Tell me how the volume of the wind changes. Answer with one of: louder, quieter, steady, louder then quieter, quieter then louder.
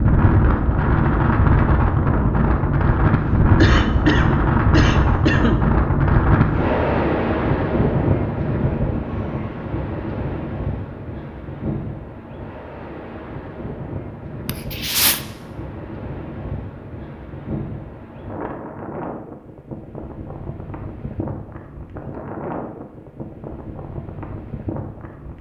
quieter.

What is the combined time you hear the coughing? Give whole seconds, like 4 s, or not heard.
3 s.